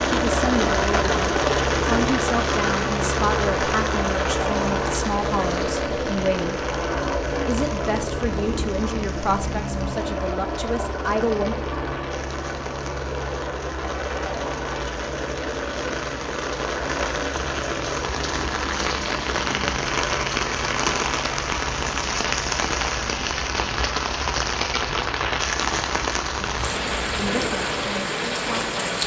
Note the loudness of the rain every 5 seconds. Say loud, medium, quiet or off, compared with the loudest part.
loud, medium, quiet, loud, loud, loud.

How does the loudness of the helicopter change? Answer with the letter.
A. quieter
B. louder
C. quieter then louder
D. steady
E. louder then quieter
A.